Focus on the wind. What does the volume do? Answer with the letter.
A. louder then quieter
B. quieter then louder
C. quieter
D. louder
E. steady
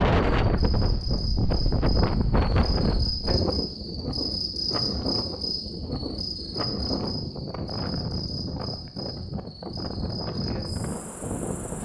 C.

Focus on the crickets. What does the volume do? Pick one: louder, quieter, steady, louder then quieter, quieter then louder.
louder then quieter.